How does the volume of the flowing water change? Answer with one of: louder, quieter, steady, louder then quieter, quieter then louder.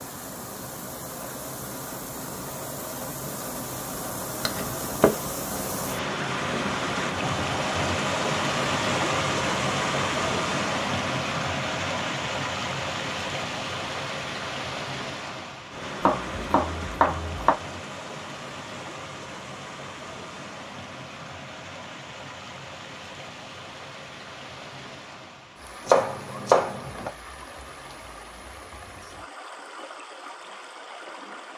louder then quieter.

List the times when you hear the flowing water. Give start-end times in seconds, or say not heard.
0.0-31.5.